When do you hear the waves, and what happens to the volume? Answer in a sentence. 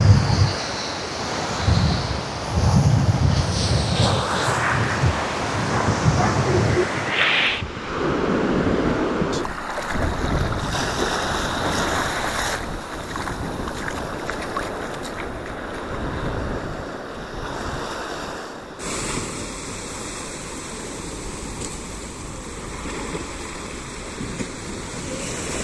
The waves can be heard from 0.0 to 25.5 s, getting quieter.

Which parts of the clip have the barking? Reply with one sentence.
You can hear the barking from 5.7 to 6.8 s.